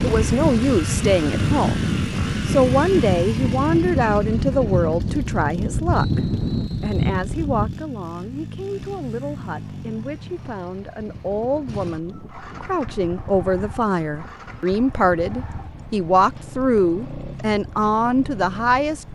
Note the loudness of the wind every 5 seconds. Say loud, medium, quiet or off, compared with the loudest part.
loud, loud, quiet, quiet.